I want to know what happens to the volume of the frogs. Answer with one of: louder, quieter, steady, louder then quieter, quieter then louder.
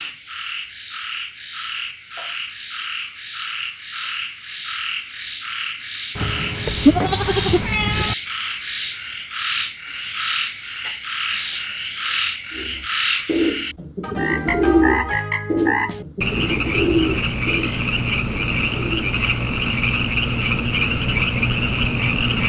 louder.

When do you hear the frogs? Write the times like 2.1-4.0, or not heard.
0.0-22.4.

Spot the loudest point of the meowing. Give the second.
8 s.